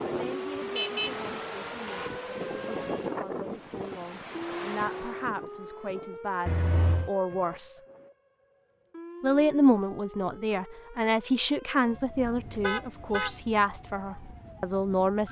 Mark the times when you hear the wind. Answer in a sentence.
The wind can be heard from 0.0 to 8.1 s.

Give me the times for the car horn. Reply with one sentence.
The car horn can be heard from 0.7 to 2.1 s, from 6.5 to 7.1 s and from 12.2 to 13.3 s.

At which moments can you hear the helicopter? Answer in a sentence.
The helicopter can't be heard in this clip.